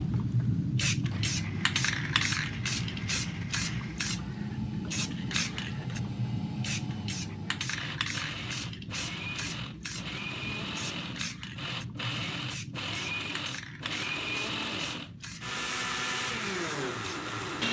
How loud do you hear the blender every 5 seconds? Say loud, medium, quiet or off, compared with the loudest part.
quiet, medium, loud, loud.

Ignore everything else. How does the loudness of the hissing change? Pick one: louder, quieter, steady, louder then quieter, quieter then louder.
quieter.